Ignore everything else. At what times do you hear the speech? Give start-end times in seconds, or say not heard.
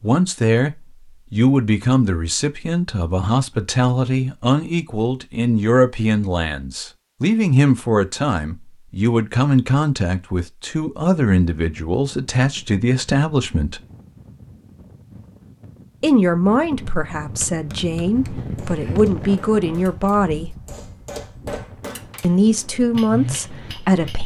0.0-13.8, 16.0-20.6, 22.2-24.2.